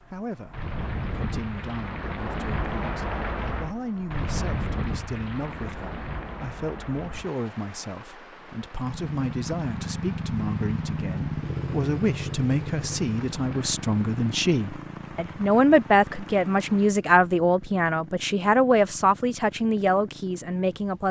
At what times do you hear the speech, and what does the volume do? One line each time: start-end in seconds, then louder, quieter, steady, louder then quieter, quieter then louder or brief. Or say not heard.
0.0-21.0 louder.